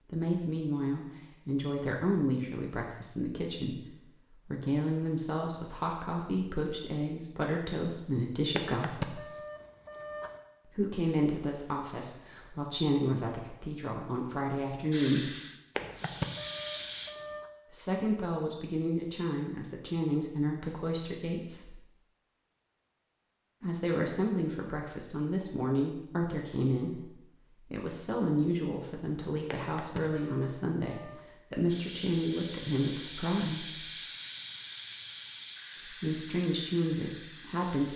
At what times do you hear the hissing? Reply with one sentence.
You can hear the hissing from 14.9 to 17.1 s and from 31.6 to 37.9 s.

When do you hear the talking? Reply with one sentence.
You can hear the talking from 0.1 to 9.2 s, from 10.7 to 15.3 s, from 17.7 to 21.8 s, from 23.6 to 33.9 s and from 35.9 to 37.9 s.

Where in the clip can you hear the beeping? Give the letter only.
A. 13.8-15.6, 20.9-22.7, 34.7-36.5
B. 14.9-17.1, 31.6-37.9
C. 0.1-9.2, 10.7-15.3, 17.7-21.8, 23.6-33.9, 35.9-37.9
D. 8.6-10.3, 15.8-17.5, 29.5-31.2
D.